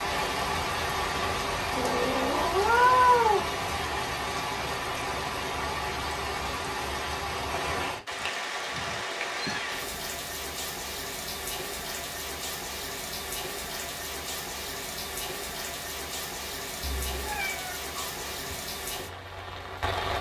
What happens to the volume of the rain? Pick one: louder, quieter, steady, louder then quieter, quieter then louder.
quieter.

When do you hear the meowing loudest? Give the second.
3 s.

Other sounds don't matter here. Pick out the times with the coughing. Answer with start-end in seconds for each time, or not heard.
not heard.